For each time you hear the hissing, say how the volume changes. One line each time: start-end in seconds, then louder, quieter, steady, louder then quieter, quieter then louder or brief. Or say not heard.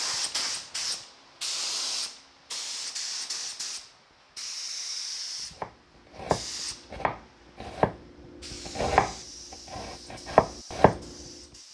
0.0-11.6 quieter.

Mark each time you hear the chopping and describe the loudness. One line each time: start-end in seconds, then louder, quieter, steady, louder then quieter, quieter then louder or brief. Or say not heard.
5.6-11.1 quieter then louder.